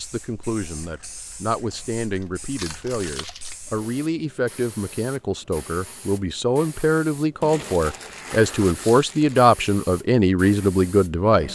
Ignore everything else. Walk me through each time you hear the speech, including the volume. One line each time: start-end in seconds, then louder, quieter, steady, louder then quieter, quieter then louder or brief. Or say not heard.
0.0-11.4 louder.